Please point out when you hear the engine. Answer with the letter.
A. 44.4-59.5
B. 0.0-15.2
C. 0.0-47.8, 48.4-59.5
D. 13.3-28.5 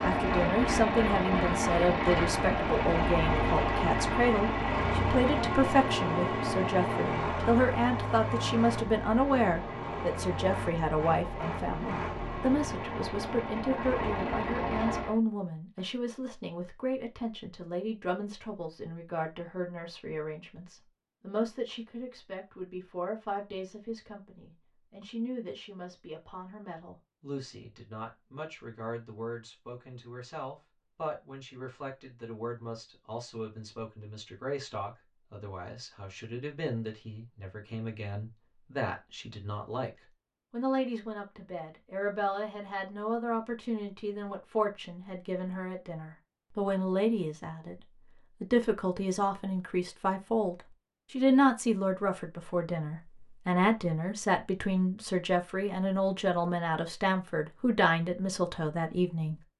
B.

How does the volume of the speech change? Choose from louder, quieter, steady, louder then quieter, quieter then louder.
quieter then louder.